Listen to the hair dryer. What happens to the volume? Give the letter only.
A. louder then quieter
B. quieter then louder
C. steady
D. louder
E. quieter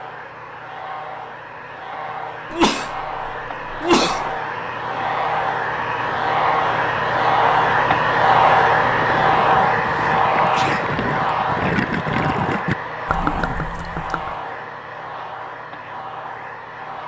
A.